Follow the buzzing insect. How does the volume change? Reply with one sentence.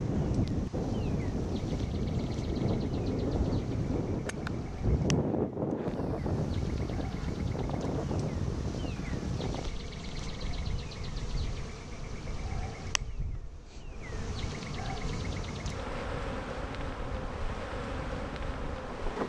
The volume of the buzzing insect goes up.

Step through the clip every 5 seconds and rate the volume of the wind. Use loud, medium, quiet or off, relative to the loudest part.
loud, loud, quiet, medium.